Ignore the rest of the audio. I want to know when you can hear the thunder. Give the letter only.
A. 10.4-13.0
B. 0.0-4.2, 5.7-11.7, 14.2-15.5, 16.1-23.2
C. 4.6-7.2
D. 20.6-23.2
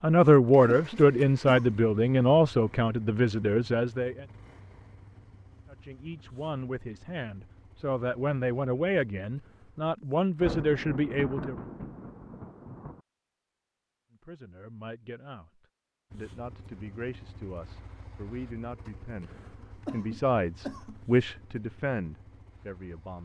A.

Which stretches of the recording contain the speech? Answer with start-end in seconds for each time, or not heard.
0.0-4.2, 5.7-11.7, 14.2-15.5, 16.1-23.2.